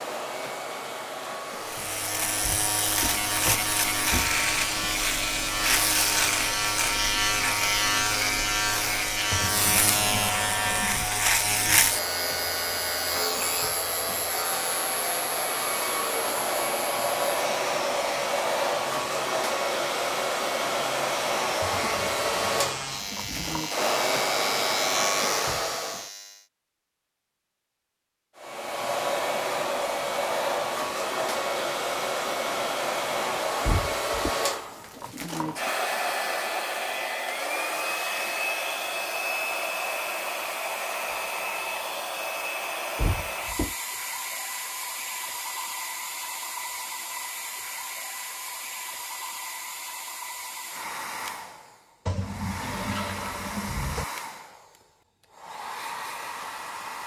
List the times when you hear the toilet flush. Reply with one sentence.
You can hear the toilet flush from 9.3 to 11.1 s, from 21.6 to 23.6 s and from 52.0 to 54.0 s.